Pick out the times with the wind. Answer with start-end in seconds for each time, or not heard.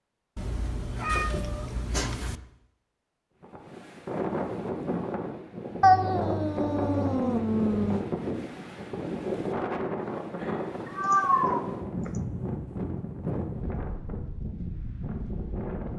3.4-15.9.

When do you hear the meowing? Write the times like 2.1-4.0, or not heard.
0.3-2.4, 5.8-8.1, 10.8-12.1.